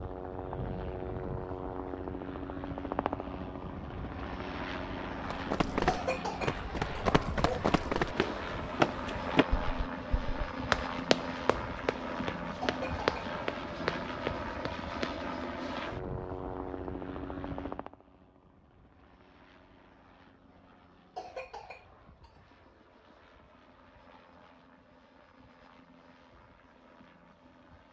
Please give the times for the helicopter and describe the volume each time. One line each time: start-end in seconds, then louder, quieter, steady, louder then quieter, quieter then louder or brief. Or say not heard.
0.0-27.8 quieter.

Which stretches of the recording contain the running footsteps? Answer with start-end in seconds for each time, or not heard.
5.2-15.4.